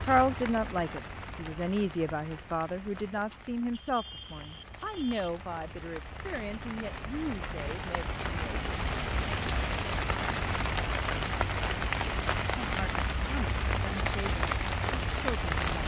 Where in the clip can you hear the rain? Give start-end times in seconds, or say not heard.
0.0-15.8.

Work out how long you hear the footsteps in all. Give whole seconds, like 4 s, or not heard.
not heard.